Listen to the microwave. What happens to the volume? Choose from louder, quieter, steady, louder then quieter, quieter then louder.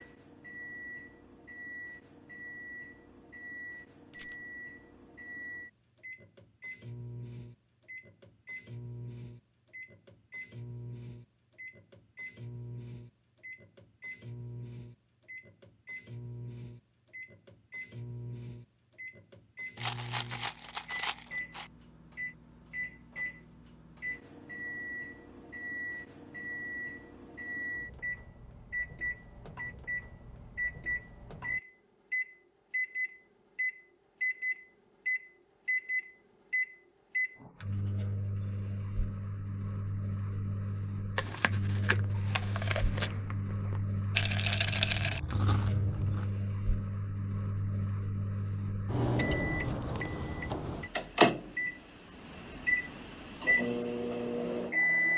louder.